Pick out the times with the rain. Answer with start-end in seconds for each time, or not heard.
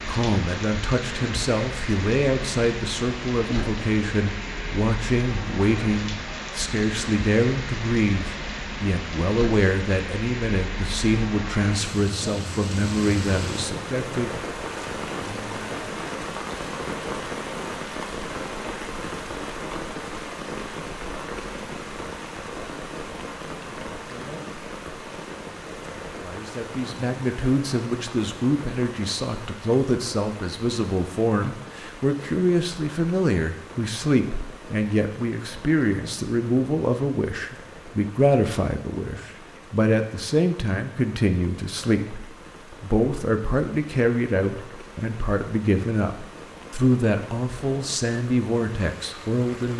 0.0-49.7.